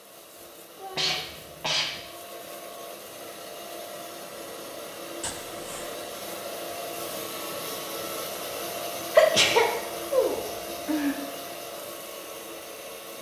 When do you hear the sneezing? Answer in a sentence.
The sneezing can be heard from 0.9 to 2.0 s, from 5.2 to 5.9 s and from 9.2 to 11.2 s.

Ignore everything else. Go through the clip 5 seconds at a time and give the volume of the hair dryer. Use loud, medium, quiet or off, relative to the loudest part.
medium, loud, loud.